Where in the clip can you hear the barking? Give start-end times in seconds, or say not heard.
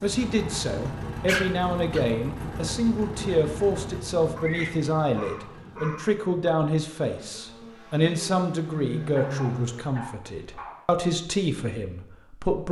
1.2-2.1, 4.3-6.2, 9.1-10.8.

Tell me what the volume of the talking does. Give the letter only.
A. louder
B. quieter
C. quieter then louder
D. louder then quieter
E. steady
E.